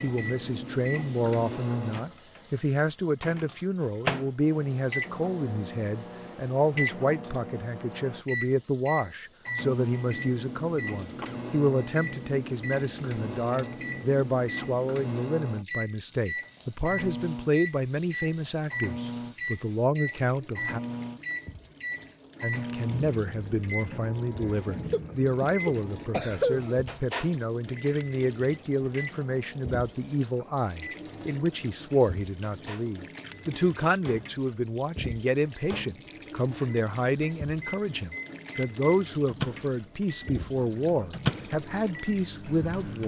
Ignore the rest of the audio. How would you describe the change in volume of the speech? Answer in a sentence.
The loudness of the speech stays about the same.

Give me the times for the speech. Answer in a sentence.
The speech can be heard from 0.0 to 20.8 s and from 22.4 to 43.0 s.